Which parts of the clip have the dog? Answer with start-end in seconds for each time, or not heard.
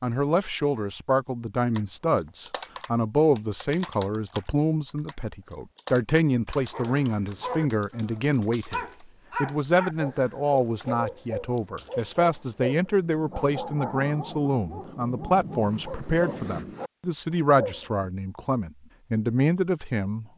6.7-18.1.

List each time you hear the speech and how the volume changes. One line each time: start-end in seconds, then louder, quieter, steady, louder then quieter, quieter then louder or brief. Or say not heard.
0.0-20.3 steady.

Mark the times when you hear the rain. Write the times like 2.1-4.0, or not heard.
not heard.